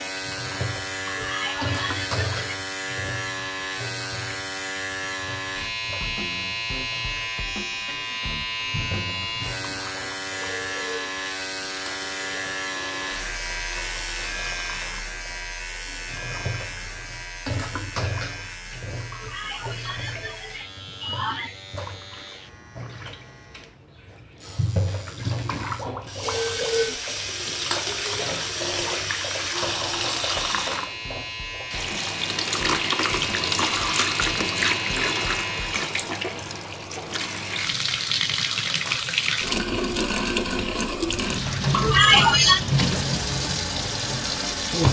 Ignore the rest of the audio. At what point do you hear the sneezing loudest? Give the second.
42 s.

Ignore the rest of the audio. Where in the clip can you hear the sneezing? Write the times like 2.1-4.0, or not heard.
1.1-2.5, 19.1-21.6, 41.7-42.6.